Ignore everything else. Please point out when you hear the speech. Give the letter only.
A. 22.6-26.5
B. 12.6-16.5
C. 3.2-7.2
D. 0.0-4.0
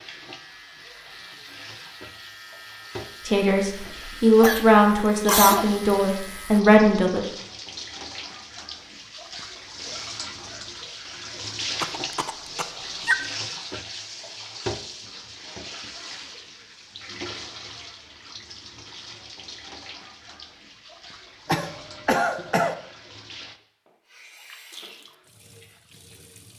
C.